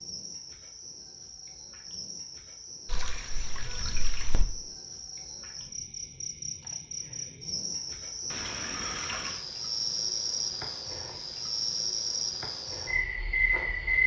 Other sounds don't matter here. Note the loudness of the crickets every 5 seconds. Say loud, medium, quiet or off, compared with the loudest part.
quiet, medium, loud.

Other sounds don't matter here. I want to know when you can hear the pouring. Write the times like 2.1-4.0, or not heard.
2.9-4.5, 8.3-9.4.